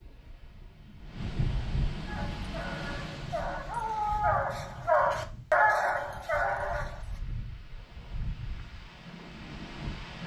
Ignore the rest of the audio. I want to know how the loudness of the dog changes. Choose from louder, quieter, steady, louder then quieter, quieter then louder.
louder then quieter.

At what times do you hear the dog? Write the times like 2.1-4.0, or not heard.
2.0-7.2.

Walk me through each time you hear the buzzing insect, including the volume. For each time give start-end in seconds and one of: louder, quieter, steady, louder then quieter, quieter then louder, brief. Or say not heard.
not heard.